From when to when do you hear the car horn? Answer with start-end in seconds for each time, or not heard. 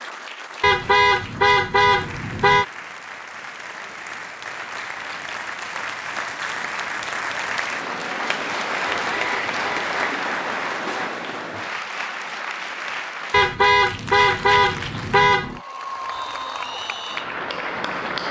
0.6-2.6, 9.1-10.0, 13.3-15.6.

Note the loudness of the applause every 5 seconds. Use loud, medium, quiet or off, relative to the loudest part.
medium, loud, loud, loud.